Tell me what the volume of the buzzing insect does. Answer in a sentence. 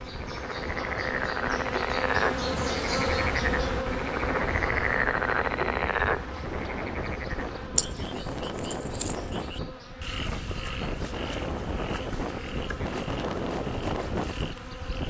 The volume of the buzzing insect goes down.